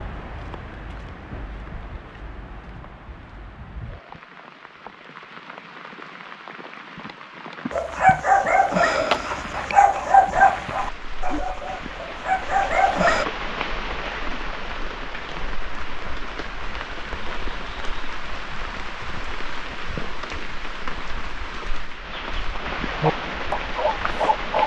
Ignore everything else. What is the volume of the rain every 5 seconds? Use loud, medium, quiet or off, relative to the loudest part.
medium, medium, loud, loud, loud.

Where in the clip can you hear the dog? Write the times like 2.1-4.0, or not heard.
7.7-13.2, 23.0-24.6.